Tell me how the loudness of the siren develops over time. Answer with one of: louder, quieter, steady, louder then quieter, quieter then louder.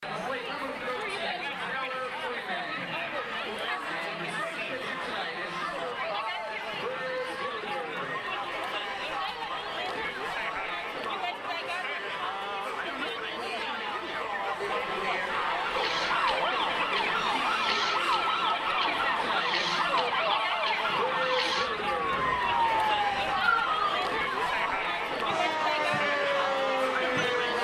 steady.